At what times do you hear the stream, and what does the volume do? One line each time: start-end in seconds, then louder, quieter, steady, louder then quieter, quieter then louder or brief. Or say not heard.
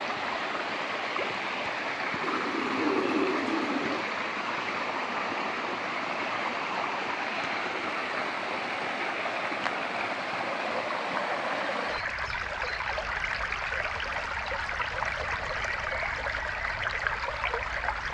0.0-18.1 steady.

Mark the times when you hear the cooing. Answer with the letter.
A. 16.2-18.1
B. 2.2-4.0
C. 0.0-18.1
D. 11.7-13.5
B.